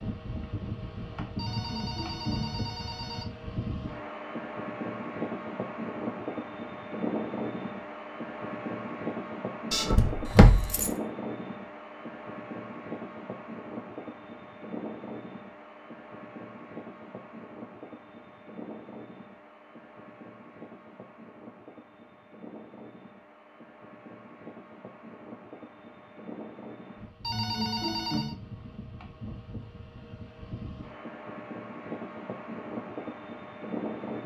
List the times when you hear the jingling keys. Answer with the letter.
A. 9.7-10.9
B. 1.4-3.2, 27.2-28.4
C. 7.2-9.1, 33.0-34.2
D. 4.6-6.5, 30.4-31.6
A.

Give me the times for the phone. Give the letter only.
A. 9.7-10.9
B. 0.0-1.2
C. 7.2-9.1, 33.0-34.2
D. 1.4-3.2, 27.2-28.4
D.